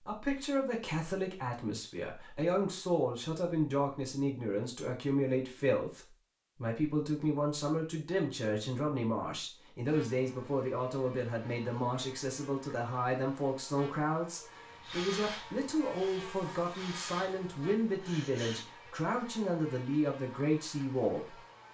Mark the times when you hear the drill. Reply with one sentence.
The drill can be heard from 14.7 to 18.6 s.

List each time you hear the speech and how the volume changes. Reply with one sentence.
You can hear the speech from 0.0 to 21.4 s, at a steady volume.